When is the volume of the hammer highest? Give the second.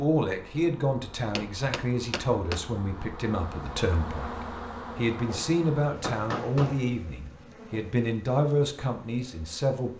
6 s.